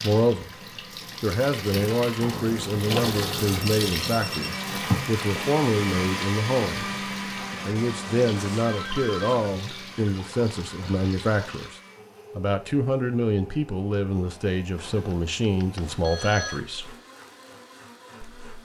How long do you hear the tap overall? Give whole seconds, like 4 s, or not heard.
12 s.